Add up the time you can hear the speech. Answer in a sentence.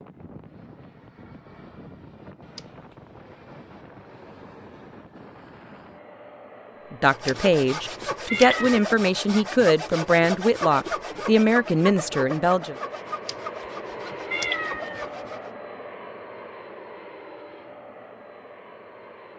The speech can be heard for 6 seconds in total.